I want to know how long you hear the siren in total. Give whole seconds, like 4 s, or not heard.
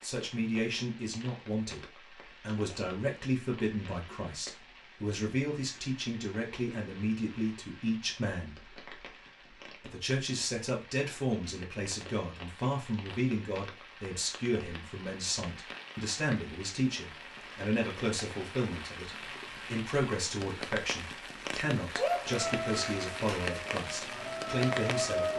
3 s.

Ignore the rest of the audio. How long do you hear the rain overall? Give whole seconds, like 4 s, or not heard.
25 s.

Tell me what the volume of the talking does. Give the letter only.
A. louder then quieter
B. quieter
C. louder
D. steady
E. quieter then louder
D.